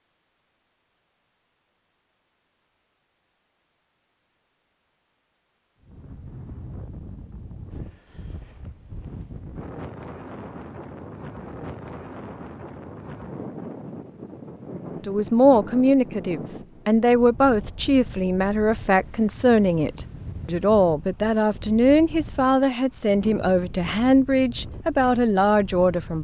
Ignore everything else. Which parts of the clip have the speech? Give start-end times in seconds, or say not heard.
15.1-26.2.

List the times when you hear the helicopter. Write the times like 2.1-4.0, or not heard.
not heard.